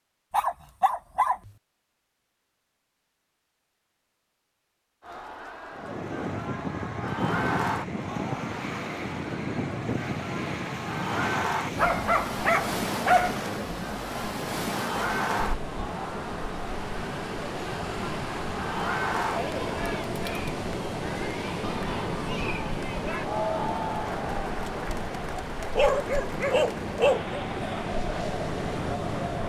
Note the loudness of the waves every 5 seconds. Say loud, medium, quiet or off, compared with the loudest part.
off, loud, loud, loud, loud, loud.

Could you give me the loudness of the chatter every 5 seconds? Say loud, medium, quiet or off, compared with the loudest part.
off, loud, loud, loud, loud, loud.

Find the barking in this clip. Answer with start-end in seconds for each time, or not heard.
0.3-1.5, 11.8-13.4, 25.8-27.4.